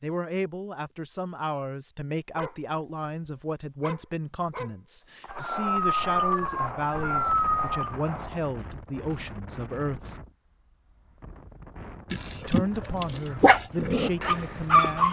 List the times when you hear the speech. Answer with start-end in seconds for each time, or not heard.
0.0-10.2, 12.4-15.0.